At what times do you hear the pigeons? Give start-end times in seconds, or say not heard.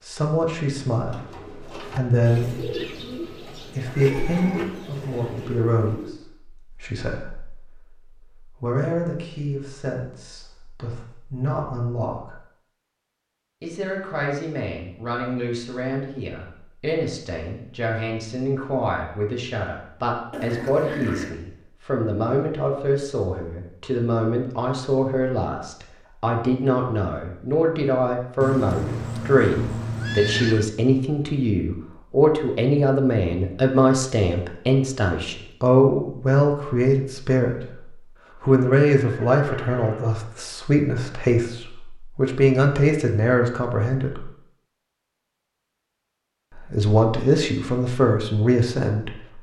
1.0-6.2.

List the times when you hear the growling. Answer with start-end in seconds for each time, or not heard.
20.3-21.3.